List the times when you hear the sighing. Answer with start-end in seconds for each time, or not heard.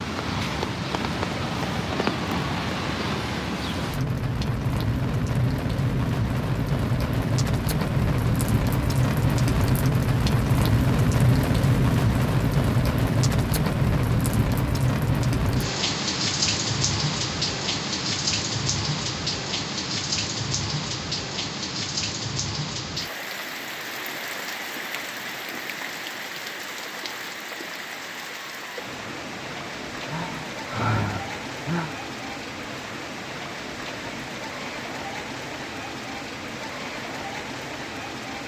30.1-31.9.